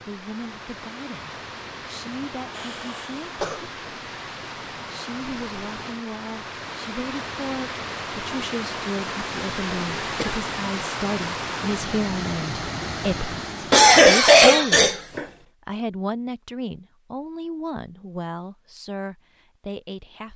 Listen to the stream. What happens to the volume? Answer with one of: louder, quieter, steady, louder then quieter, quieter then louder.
louder.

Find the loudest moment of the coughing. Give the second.
14 s.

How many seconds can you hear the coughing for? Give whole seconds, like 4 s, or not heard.
4 s.